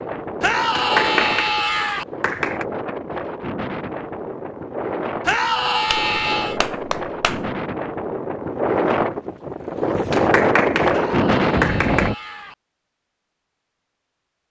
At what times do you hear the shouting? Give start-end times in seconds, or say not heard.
0.4-2.0, 5.2-6.6, 10.9-12.6.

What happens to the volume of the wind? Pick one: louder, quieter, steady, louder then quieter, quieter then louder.
louder.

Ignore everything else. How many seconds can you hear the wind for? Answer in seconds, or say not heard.
12 s.